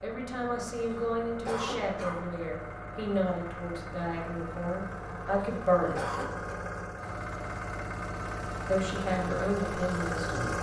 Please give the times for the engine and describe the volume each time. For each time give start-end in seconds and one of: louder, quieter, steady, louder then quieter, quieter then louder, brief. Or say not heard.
0.0-10.5 louder.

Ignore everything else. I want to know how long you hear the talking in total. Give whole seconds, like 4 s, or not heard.
8 s.